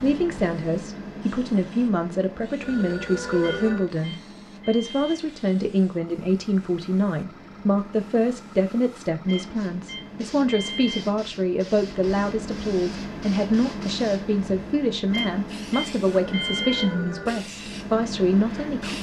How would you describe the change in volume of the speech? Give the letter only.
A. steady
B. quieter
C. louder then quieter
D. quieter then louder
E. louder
A.